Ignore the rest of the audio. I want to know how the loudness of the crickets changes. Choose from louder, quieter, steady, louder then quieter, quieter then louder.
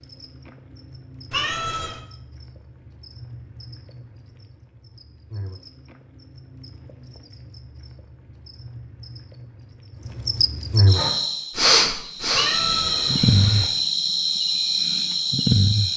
louder.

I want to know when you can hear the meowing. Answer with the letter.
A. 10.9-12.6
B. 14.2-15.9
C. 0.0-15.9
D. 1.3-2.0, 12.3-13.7
D.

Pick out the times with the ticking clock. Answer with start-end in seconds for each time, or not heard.
not heard.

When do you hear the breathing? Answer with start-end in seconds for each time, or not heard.
10.9-12.6.